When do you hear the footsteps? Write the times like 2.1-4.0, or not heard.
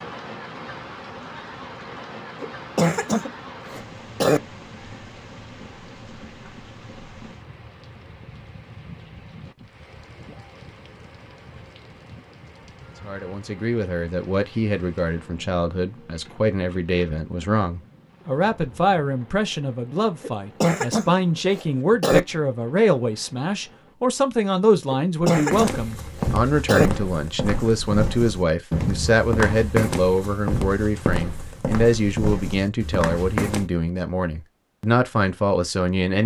25.5-33.7.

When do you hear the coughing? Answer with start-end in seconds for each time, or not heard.
2.4-4.4, 20.2-22.2, 24.9-26.9.